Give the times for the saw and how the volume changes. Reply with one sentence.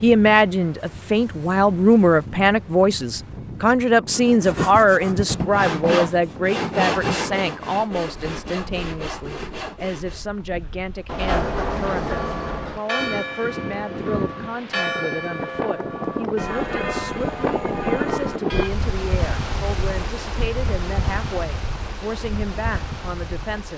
The saw can be heard from 4.1 to 10.2 s, getting quieter.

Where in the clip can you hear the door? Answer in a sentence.
The door can be heard from 11.1 to 12.8 s.